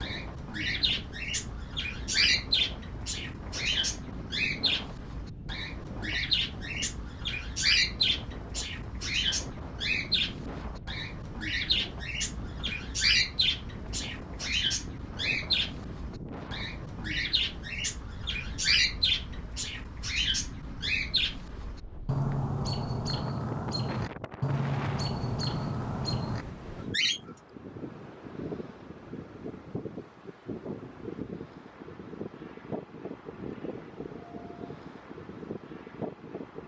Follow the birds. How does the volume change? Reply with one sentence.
The loudness of the birds stays about the same.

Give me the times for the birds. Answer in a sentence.
You can hear the birds from 0.0 to 27.2 s.